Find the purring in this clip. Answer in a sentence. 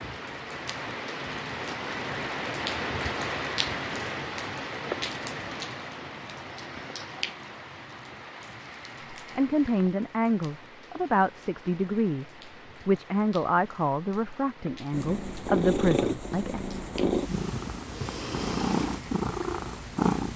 You can hear the purring from 14.9 to 20.3 s.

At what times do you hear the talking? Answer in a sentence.
The talking can be heard from 9.3 to 16.6 s.